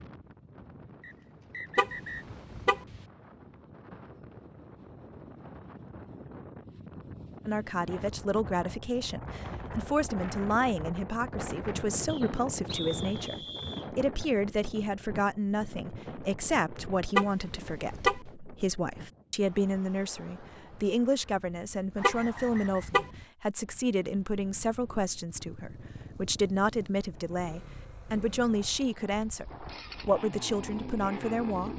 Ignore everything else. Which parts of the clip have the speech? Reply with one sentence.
You can hear the speech from 7.5 to 31.7 s.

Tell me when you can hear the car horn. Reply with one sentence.
The car horn can be heard from 1.8 to 3.0 s, from 17.1 to 18.2 s and from 22.0 to 23.1 s.